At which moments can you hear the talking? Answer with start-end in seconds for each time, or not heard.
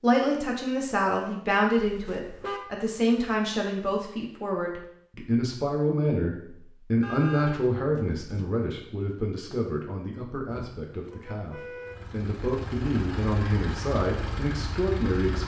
0.0-15.4.